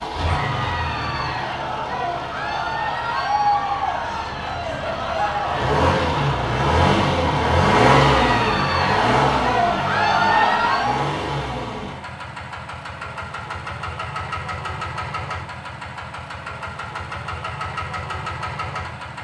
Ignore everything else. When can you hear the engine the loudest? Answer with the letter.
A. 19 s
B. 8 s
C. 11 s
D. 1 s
B.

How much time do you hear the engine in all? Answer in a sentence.
You can hear the engine for 19 seconds altogether.